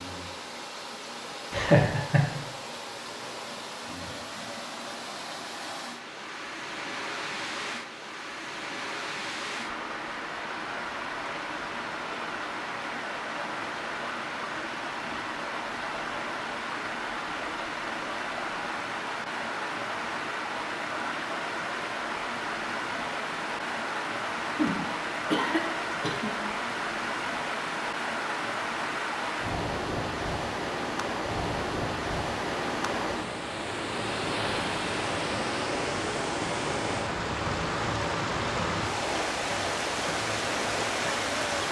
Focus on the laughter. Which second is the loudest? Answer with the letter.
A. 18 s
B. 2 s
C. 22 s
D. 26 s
B.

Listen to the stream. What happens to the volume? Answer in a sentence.
The loudness of the stream goes up.